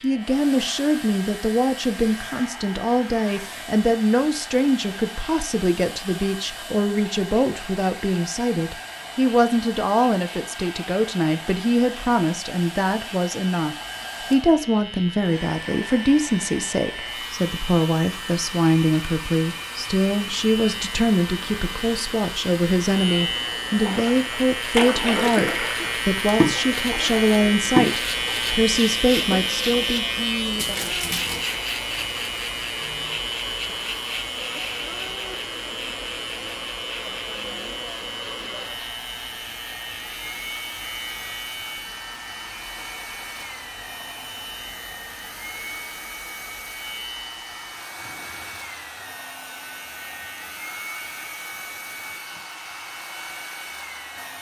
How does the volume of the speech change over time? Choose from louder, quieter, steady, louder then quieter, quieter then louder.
steady.